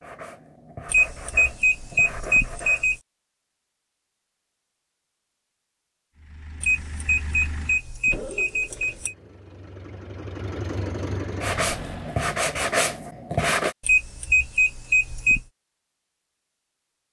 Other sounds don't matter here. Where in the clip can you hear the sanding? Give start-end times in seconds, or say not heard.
0.0-2.9, 11.4-13.8.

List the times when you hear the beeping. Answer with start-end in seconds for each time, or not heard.
0.8-3.0, 6.6-9.2, 13.8-15.4.